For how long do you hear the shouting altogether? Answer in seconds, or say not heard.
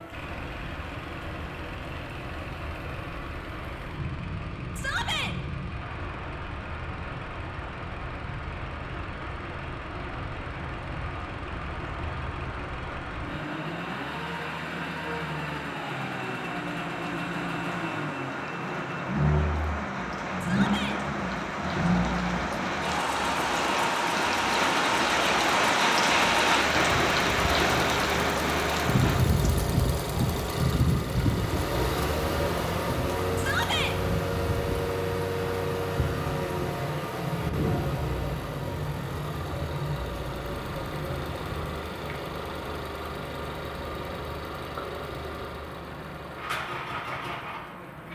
2 s.